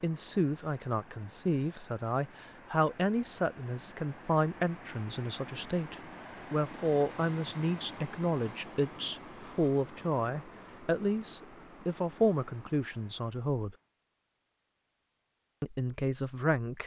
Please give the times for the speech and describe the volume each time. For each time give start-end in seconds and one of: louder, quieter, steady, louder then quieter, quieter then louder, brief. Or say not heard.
0.0-13.8 steady
15.6-16.8 brief.